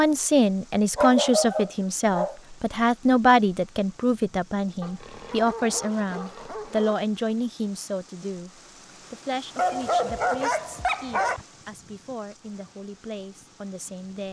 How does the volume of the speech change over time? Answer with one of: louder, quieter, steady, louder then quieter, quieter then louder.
quieter.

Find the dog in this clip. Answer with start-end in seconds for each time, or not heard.
0.9-2.4, 4.8-7.0, 9.6-11.4.